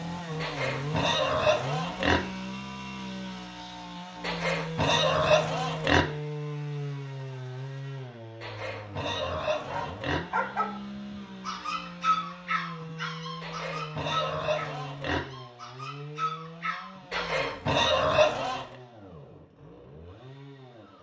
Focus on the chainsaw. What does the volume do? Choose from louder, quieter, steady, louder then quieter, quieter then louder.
quieter.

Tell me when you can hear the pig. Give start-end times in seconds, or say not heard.
0.4-2.2, 4.2-6.0, 8.4-10.2, 13.4-15.2, 17.1-18.8.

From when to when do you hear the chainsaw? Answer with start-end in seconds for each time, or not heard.
0.0-20.9.